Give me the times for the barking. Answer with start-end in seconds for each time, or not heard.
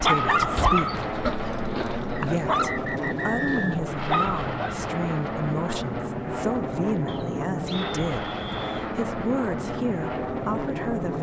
0.0-4.8.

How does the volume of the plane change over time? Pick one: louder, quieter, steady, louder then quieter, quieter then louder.
steady.